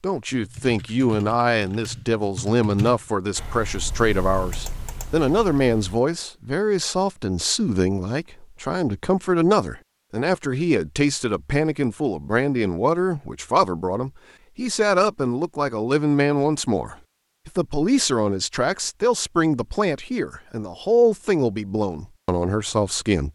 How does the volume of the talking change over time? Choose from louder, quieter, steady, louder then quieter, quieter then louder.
steady.